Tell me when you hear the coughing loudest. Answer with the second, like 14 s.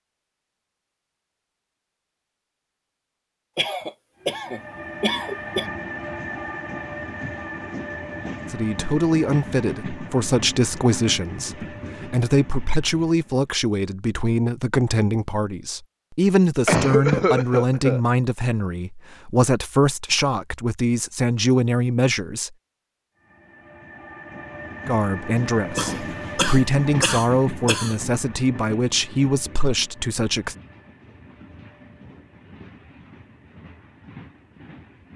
17 s.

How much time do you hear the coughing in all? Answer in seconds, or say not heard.
6 s.